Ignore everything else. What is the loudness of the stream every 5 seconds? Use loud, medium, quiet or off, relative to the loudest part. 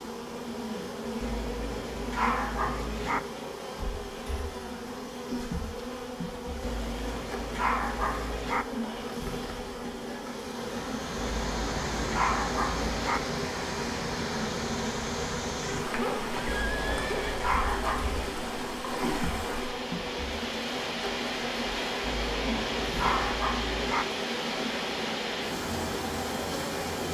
off, off, loud, loud, loud, loud.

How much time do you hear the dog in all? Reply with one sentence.
The dog can be heard for 10 seconds in total.